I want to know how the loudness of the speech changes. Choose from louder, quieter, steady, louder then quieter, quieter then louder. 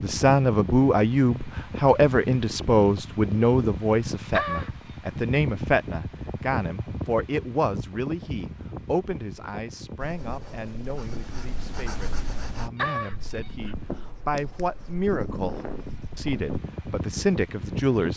quieter then louder.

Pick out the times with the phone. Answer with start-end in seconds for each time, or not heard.
4.3-4.8, 12.8-13.8.